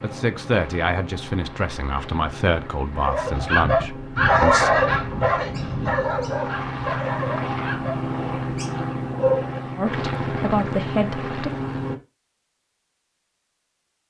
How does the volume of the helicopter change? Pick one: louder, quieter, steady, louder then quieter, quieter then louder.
louder.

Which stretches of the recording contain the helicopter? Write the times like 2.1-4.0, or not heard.
0.0-11.9.